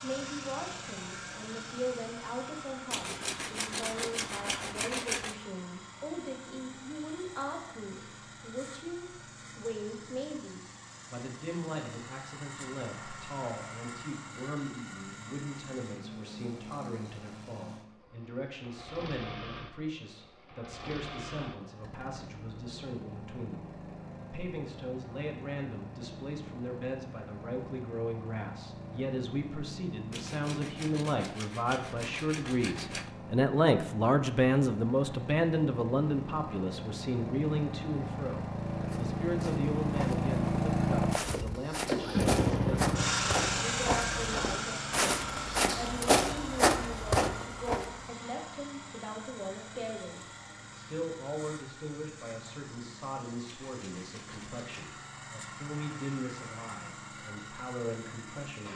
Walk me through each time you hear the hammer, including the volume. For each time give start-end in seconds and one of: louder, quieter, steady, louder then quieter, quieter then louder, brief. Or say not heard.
not heard.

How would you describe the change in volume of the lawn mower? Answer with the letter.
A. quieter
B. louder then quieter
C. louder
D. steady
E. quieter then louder
B.